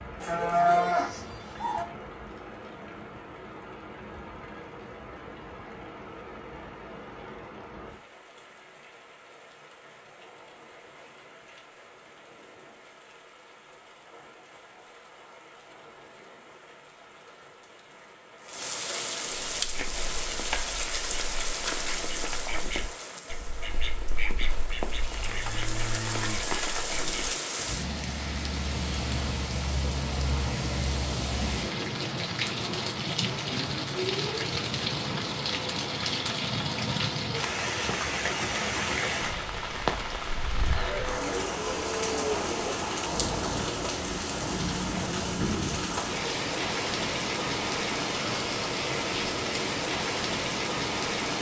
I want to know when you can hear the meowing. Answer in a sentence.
You can't hear the meowing here.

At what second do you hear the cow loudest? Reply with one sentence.
The loudest moment of the cow is at 1 second.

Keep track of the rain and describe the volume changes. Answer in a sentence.
The loudness of the rain goes up.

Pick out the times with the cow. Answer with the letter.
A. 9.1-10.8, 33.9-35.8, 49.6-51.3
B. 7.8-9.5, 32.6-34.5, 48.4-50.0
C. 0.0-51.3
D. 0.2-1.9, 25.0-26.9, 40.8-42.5
D.